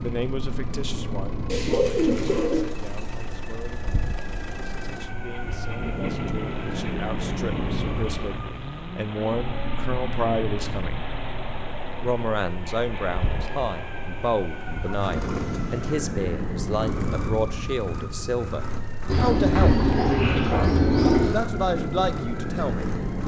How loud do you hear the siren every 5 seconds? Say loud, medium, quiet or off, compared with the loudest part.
medium, loud, medium, loud, loud.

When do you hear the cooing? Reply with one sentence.
The cooing can be heard from 1.4 to 2.6 s and from 19.1 to 21.4 s.